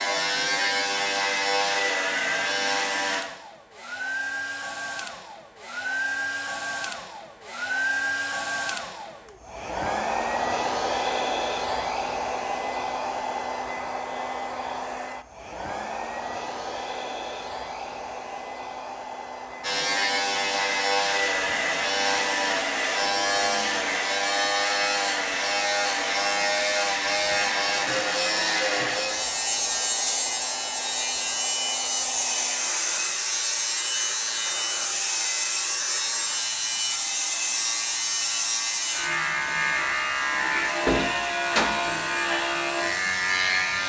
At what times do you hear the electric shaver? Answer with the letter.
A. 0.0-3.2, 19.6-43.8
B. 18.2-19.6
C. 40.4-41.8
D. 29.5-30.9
A.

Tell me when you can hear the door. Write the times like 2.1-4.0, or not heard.
40.4-41.8.